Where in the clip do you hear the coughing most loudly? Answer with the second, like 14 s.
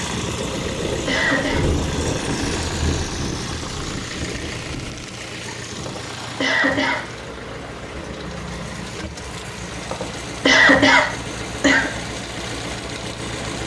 11 s.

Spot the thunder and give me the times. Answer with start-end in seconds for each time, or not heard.
0.3-5.1.